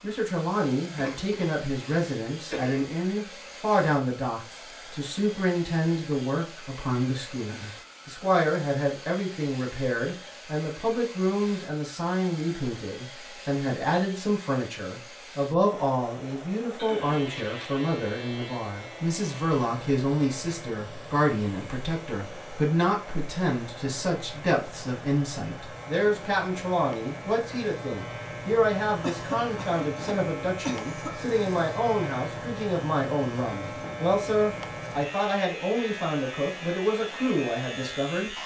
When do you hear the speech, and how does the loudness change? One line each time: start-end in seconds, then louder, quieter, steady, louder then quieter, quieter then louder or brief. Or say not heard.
0.0-38.4 steady.